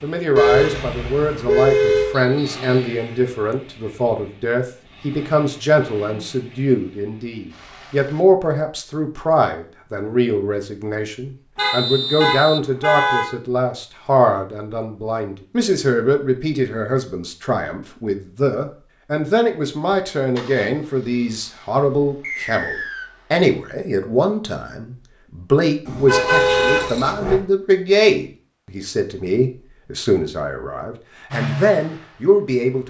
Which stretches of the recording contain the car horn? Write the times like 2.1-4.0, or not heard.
0.3-2.2, 11.6-13.2, 25.9-27.4.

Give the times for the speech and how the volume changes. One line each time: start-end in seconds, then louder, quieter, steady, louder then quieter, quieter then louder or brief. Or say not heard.
0.0-32.8 steady.